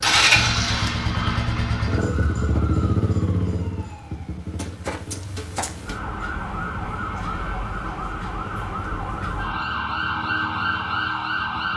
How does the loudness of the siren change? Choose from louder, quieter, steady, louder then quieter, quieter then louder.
louder.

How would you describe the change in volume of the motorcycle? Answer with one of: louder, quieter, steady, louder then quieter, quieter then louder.
quieter.